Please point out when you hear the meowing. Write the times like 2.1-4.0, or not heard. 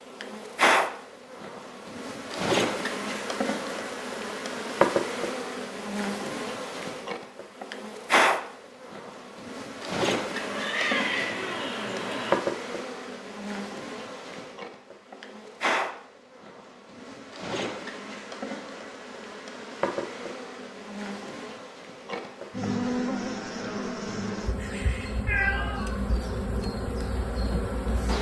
10.3-12.3, 25.2-26.0.